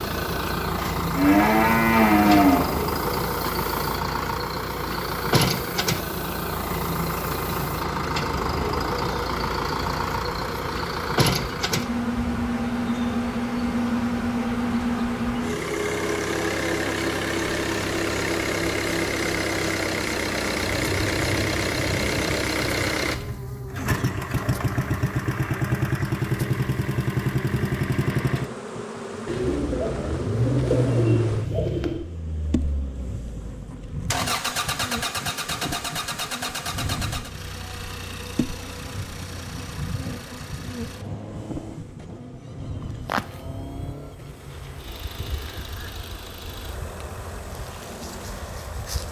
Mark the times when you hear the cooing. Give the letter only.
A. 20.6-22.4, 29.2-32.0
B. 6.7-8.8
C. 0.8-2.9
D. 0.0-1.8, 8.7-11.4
A.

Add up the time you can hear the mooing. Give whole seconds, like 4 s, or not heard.
2 s.